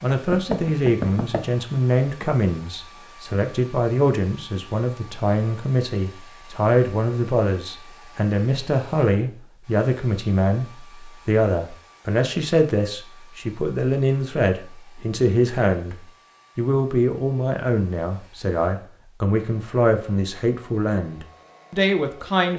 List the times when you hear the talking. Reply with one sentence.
You can hear the talking from 0.0 to 15.9 s and from 16.6 to 22.5 s.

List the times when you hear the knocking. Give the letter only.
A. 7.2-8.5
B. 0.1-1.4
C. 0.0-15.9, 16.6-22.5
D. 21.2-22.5
B.